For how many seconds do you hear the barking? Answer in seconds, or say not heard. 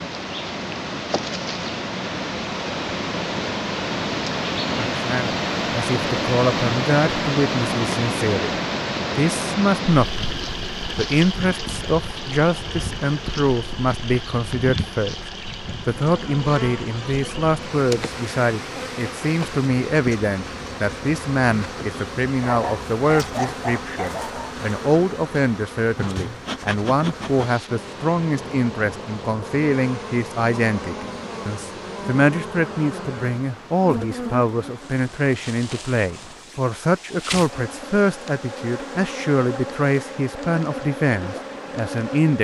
2 s.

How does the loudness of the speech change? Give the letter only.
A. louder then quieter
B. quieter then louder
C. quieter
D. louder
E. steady
E.